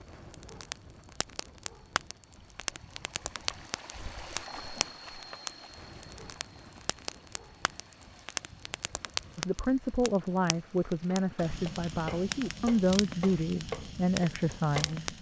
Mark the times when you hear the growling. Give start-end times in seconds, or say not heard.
not heard.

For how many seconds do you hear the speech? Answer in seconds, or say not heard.
6 s.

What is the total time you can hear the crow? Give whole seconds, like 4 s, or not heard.
not heard.